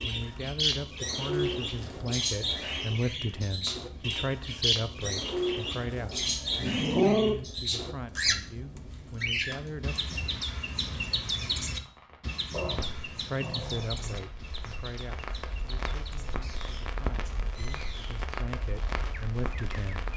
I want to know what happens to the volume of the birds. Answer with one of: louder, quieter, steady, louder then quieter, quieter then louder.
quieter.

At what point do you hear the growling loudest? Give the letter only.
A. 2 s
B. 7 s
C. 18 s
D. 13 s
B.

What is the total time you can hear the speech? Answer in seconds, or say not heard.
17 s.